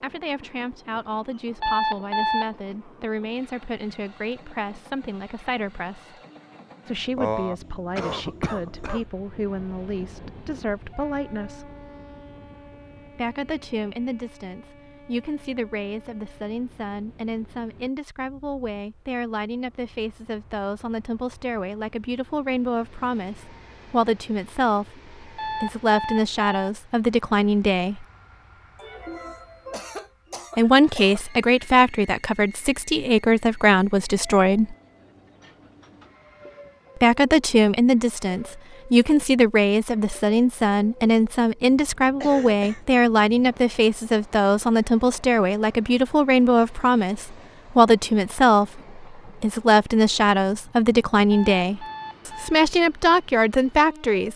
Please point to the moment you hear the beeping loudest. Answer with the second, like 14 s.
2 s.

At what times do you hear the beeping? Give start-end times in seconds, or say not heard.
1.6-2.5, 25.4-26.7, 51.3-52.6.